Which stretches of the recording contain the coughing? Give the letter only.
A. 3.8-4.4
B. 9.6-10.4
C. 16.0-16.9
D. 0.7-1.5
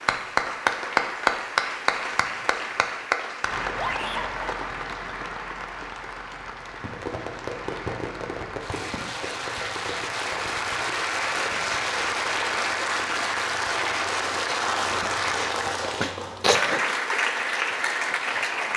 C.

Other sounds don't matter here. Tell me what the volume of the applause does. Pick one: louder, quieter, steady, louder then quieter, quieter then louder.
quieter then louder.